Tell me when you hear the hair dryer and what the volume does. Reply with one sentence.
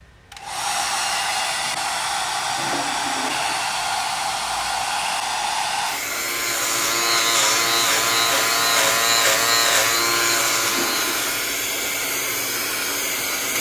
You can hear the hair dryer from 0.0 to 13.5 s, at a steady volume.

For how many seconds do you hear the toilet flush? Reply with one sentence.
The toilet flush can be heard for 3 seconds in total.